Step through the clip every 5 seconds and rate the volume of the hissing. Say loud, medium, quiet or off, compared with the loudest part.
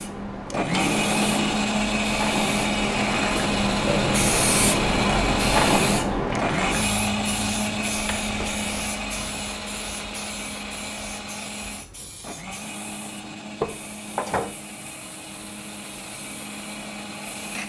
loud, loud, quiet, quiet.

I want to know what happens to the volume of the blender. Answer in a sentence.
The volume of the blender goes down.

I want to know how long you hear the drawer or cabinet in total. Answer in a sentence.
The drawer or cabinet can be heard for 3 seconds in total.